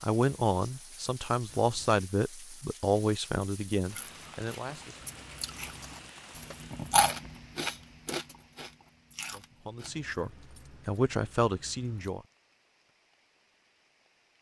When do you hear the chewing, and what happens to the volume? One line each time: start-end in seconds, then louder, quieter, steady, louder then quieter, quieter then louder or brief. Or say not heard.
3.9-10.1 louder then quieter.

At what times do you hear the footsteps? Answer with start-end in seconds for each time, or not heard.
not heard.